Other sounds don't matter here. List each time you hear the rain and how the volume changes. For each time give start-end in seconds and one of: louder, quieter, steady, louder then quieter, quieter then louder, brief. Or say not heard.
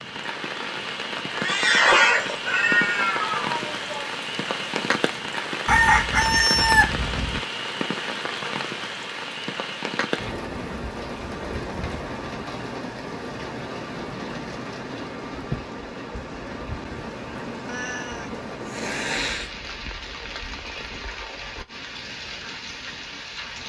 0.0-23.6 quieter.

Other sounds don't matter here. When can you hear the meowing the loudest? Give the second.
2 s.